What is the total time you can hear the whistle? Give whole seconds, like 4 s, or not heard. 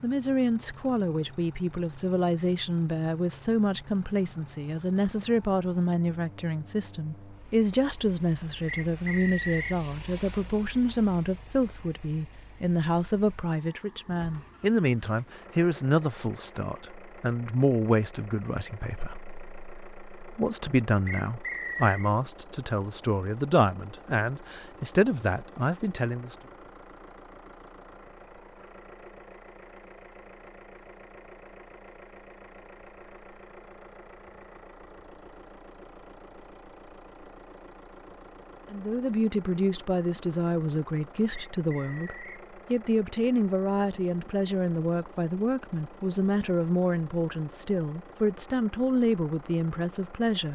3 s.